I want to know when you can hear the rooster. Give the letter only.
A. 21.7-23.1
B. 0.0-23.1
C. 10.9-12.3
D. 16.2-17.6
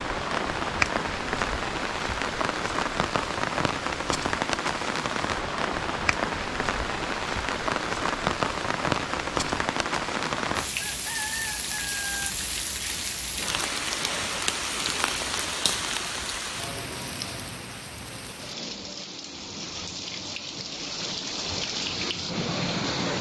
C.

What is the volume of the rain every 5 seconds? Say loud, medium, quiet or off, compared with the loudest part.
loud, loud, loud, medium, loud.